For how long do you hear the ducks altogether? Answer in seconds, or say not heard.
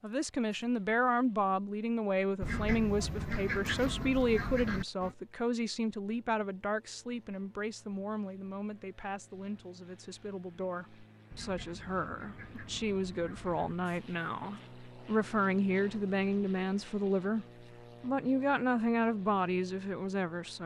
5 s.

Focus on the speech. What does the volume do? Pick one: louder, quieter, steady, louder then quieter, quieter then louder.
quieter then louder.